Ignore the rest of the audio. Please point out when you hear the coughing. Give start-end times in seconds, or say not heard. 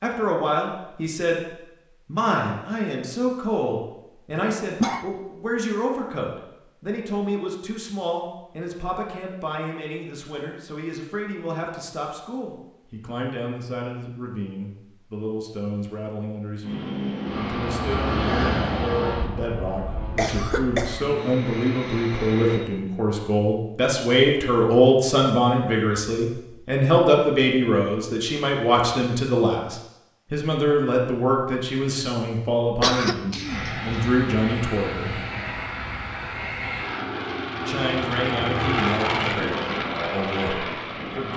4.3-5.0, 20.1-21.2, 32.8-34.1.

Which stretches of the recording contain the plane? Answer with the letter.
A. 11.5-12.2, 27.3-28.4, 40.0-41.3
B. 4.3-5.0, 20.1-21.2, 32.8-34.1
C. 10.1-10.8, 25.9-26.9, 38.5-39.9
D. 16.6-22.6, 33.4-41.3
D.